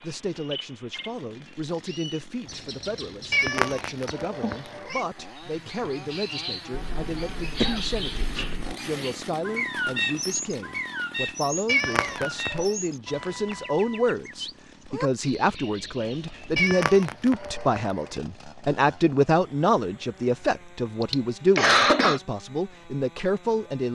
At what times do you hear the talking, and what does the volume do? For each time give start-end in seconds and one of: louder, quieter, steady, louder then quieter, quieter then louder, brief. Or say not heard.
0.0-23.8 louder.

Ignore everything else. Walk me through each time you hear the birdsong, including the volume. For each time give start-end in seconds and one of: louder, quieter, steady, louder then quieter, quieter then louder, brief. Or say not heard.
0.0-16.7 louder then quieter.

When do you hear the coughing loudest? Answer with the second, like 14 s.
22 s.